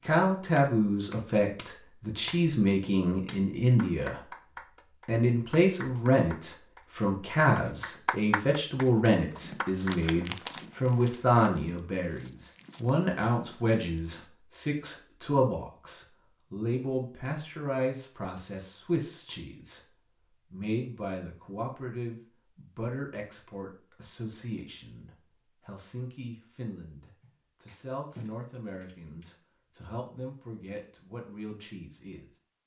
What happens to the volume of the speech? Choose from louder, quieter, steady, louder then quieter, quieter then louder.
quieter.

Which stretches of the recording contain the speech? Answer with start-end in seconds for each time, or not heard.
0.1-4.3, 5.0-32.3.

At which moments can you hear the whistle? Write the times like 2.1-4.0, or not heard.
not heard.